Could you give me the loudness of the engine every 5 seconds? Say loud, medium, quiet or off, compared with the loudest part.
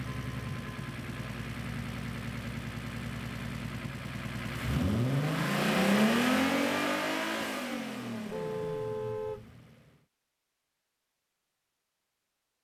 medium, loud, off.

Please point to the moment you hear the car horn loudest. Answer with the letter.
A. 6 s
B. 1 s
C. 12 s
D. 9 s
D.